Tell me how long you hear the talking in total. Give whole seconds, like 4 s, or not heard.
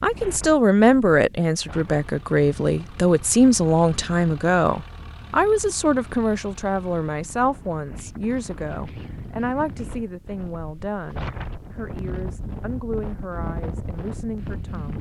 15 s.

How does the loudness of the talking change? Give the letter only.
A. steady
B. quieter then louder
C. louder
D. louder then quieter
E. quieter
E.